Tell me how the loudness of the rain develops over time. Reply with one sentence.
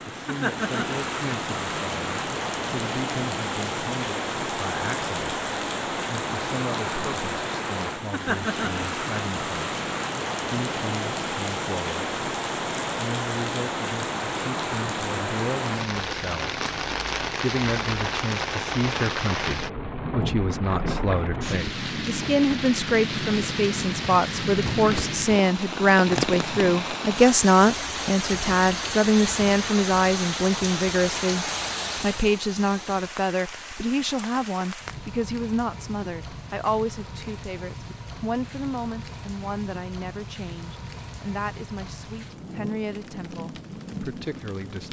The loudness of the rain goes down.